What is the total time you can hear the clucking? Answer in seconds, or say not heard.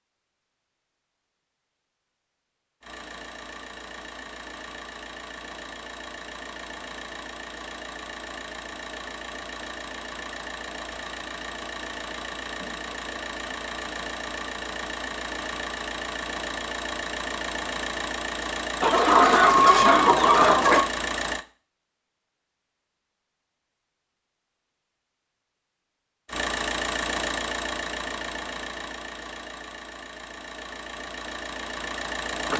2 s.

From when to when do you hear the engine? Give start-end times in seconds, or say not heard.
2.8-21.4, 26.2-32.5.